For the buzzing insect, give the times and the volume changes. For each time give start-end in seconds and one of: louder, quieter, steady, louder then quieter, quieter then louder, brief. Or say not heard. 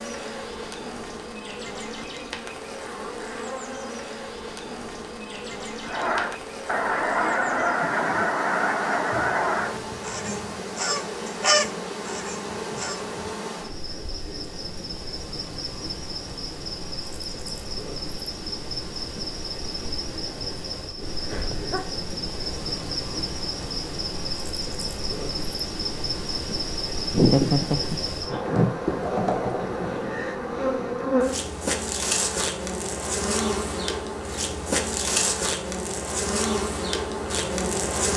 0.0-38.1 louder.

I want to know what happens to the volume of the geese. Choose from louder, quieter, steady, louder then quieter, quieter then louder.
quieter then louder.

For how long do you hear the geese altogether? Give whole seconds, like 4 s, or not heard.
7 s.